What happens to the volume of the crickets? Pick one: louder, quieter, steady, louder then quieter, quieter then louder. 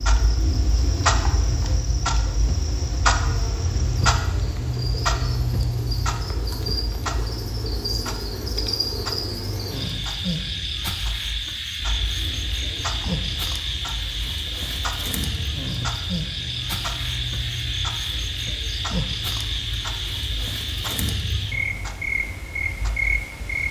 louder.